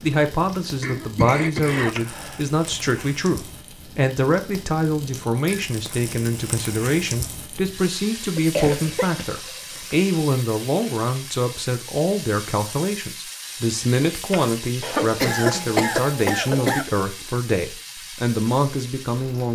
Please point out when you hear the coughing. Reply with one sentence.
You can hear the coughing from 0.8 to 2.4 s, from 8.3 to 9.9 s and from 14.8 to 16.9 s.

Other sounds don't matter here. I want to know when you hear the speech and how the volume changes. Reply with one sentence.
The speech can be heard from 0.0 to 19.4 s, at a steady volume.